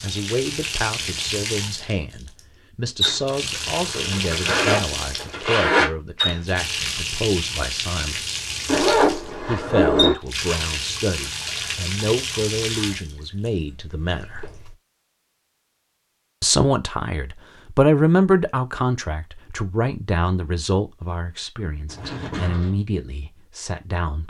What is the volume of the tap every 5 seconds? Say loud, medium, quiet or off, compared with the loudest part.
loud, loud, loud, off, off.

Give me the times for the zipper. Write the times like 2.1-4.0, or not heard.
3.7-5.9, 8.7-10.2, 21.9-22.7.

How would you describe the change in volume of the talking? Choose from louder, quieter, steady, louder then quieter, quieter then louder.
louder then quieter.